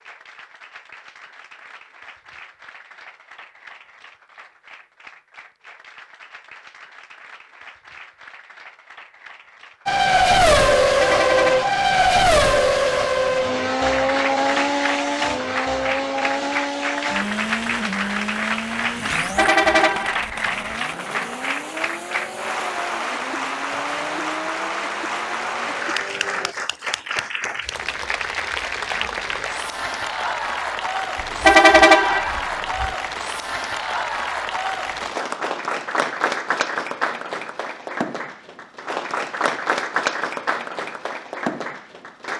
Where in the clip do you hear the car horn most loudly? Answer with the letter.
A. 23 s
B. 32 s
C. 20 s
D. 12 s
B.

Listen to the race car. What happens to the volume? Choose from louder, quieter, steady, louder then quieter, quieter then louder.
quieter.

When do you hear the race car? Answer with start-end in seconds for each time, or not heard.
9.8-26.6.